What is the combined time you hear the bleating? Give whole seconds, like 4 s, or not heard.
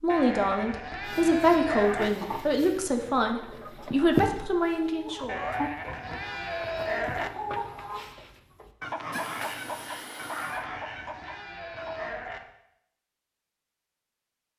6 s.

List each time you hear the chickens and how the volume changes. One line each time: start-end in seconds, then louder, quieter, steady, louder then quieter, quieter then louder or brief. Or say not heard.
1.0-12.2 louder then quieter.